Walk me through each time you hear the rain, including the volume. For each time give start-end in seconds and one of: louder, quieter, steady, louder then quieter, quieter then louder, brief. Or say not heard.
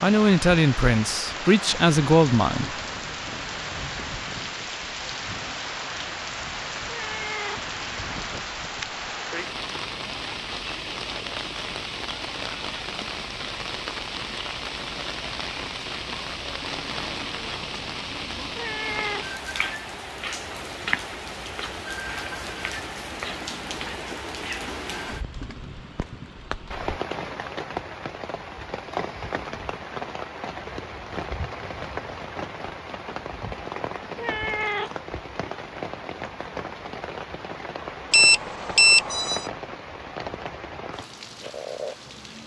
0.0-42.4 steady.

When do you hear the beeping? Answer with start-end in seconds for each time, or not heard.
38.1-39.5.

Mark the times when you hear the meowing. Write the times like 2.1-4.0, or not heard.
6.8-7.7, 18.5-19.2, 34.1-35.0.